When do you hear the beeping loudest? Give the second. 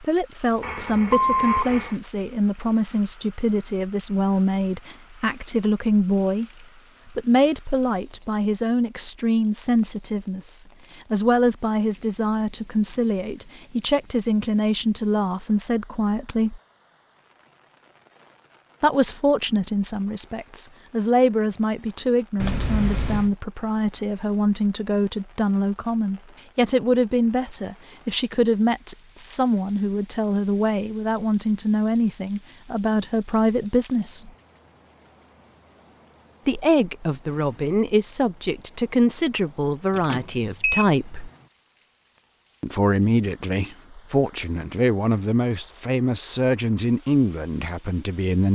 1 s.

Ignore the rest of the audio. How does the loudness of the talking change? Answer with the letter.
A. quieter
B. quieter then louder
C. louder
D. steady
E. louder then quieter
D.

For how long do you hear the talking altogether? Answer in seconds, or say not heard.
42 s.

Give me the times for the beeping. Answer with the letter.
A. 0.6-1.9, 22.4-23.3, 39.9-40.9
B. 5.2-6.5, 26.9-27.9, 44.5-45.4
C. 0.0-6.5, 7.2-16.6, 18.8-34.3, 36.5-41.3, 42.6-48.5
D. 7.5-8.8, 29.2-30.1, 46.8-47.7
A.